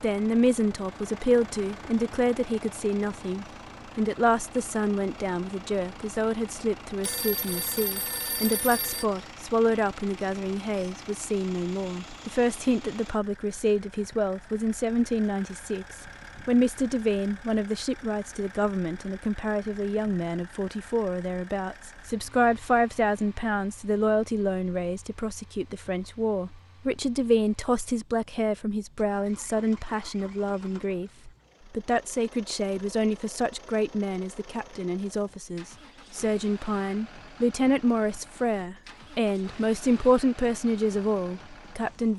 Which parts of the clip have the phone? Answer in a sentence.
You can hear the phone from 7.0 to 9.1 s.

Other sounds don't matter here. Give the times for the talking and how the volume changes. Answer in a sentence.
You can hear the talking from 0.0 to 42.1 s, at a steady volume.